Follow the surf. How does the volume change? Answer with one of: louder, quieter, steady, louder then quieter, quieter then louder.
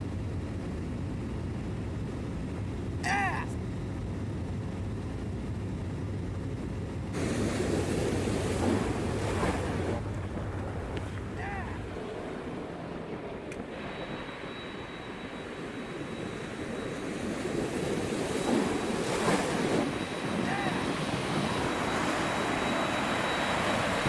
quieter then louder.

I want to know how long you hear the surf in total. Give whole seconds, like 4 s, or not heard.
17 s.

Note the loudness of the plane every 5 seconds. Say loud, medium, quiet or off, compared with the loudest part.
loud, loud, medium, medium, loud.